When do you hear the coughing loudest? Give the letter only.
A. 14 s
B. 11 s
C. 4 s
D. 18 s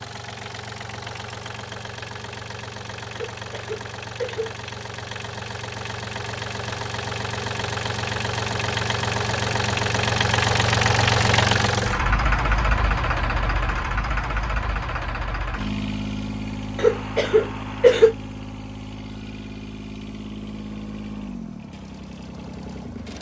D.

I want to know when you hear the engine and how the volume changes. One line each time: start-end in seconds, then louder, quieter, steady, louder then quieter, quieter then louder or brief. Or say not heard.
0.0-23.1 louder then quieter.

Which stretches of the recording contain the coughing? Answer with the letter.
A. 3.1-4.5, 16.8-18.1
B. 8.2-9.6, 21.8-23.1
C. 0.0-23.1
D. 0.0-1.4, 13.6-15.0
A.